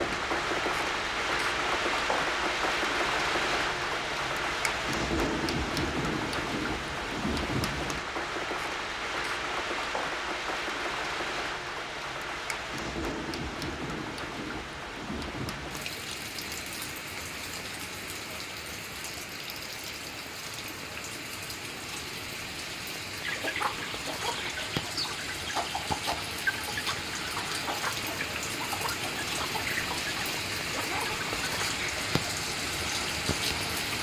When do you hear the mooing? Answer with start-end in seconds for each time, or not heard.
not heard.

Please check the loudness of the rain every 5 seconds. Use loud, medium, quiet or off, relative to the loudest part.
loud, loud, medium, medium, medium, medium, loud.